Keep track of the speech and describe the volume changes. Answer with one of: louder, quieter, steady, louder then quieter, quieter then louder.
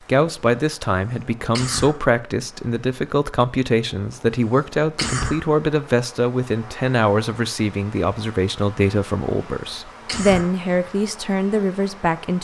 steady.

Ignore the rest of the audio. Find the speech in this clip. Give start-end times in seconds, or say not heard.
0.1-12.3.